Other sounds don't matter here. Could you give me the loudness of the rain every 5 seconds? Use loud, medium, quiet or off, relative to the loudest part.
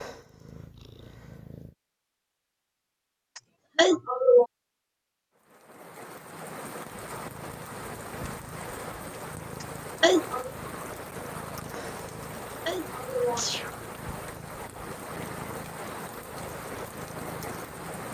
off, loud, loud, loud.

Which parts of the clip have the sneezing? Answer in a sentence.
The sneezing can be heard from 3.8 to 4.5 s, from 10.0 to 10.5 s and from 12.7 to 13.8 s.